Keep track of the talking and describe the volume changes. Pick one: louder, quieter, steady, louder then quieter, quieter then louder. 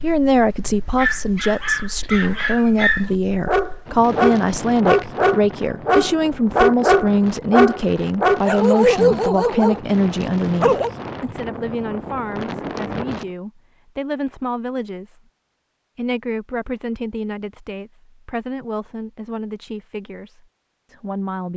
quieter.